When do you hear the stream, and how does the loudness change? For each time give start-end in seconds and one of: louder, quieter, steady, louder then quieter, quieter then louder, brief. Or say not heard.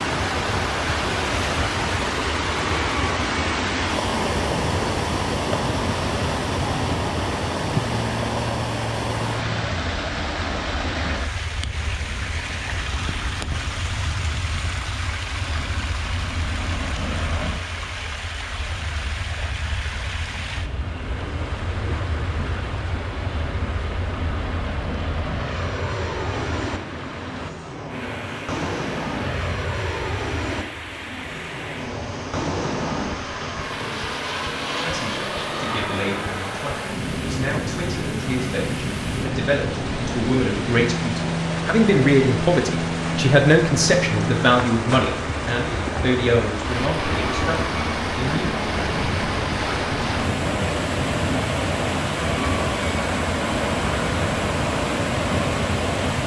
0.0-56.2 quieter then louder.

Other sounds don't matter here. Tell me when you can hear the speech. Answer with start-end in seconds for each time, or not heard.
34.8-48.5.